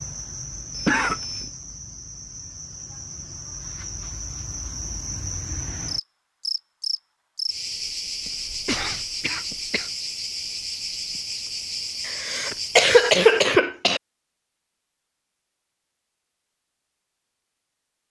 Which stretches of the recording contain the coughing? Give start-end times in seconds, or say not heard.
0.7-1.6, 8.2-9.9, 12.1-14.0.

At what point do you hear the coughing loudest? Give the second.
13 s.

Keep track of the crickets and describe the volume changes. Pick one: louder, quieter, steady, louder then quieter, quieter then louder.
louder.